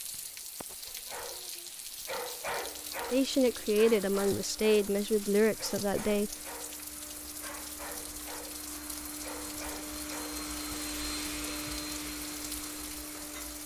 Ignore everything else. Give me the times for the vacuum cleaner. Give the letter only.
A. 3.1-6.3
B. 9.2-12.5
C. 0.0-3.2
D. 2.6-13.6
D.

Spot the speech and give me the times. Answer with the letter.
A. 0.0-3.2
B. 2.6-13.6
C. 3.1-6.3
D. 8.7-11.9
C.